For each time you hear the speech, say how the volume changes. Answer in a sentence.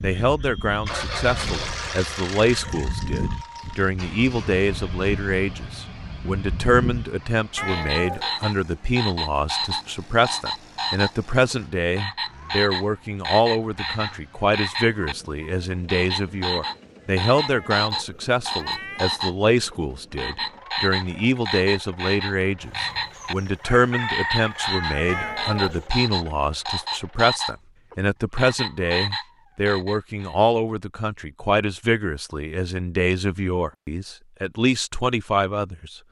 The speech can be heard from 0.0 to 36.0 s, at a steady volume.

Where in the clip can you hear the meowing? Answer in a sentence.
You can hear the meowing from 7.5 to 8.4 s, from 17.3 to 19.1 s and from 25.1 to 25.9 s.